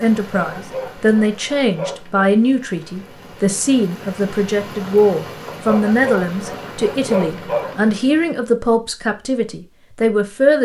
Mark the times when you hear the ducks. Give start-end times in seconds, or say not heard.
not heard.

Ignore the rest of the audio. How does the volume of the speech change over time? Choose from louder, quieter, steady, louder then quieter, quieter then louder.
steady.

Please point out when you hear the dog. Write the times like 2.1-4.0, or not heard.
0.4-2.3, 5.5-7.9.